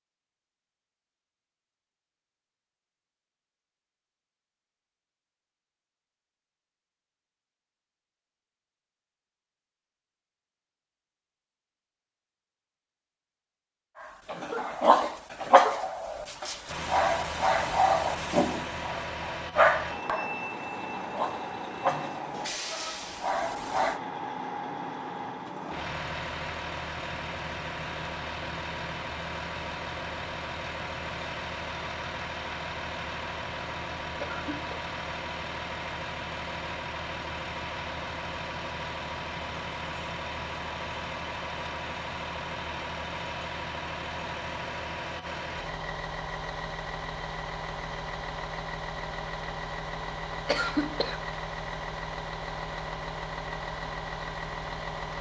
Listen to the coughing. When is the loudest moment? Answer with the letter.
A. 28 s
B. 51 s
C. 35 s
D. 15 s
B.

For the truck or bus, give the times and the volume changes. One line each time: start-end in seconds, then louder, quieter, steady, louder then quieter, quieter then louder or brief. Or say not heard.
16.6-55.1 steady.